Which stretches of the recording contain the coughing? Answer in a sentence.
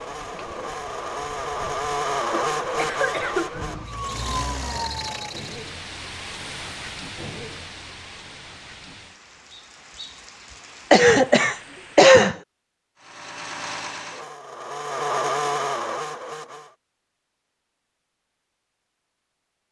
The coughing can be heard from 2.3 to 3.5 s and from 10.9 to 12.3 s.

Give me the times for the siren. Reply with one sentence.
The siren can be heard from 3.5 to 5.3 s.